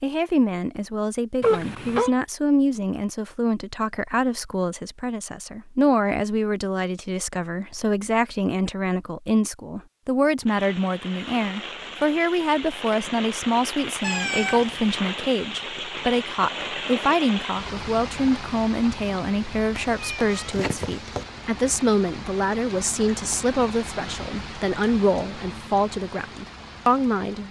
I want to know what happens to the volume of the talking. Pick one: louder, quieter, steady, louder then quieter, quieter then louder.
steady.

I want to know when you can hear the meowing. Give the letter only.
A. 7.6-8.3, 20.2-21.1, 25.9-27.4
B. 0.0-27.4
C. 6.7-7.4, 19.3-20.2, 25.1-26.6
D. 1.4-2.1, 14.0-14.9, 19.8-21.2
D.